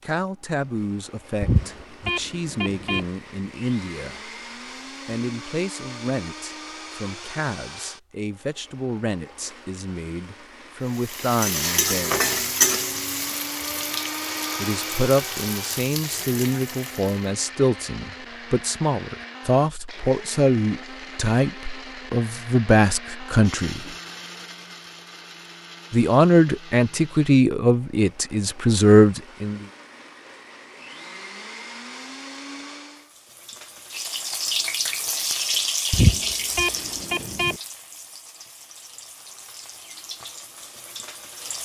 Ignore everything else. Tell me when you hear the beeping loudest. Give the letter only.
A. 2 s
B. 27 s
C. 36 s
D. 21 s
C.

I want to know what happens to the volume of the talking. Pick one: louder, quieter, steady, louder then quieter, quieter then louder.
louder.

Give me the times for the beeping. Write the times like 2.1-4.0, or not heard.
1.4-3.0, 35.9-37.5.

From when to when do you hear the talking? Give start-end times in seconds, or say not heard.
0.1-4.3, 5.0-12.5, 14.6-23.9, 25.9-29.6.